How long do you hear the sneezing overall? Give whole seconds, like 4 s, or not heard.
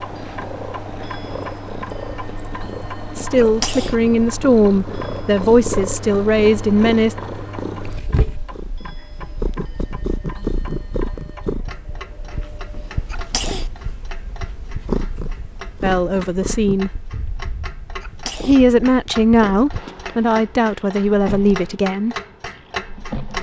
2 s.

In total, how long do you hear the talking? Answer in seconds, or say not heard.
9 s.